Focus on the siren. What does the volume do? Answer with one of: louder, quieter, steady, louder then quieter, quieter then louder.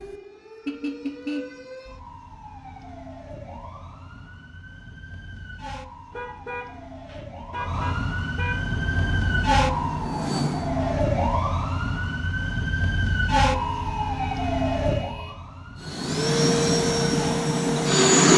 louder.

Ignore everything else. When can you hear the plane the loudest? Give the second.
18 s.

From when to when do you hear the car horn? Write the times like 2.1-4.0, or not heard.
0.7-1.6, 6.1-8.7, 13.5-15.3.